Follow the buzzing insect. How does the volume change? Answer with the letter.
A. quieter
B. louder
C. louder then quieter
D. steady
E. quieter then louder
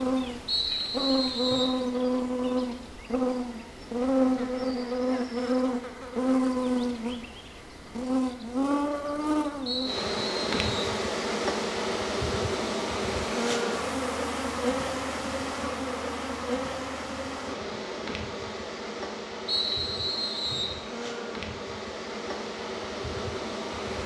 A.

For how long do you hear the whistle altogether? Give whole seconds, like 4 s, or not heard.
4 s.